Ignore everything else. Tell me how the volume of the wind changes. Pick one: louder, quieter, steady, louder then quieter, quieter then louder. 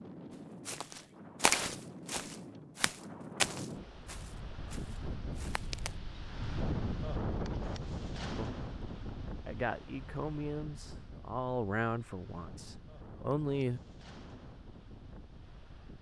louder then quieter.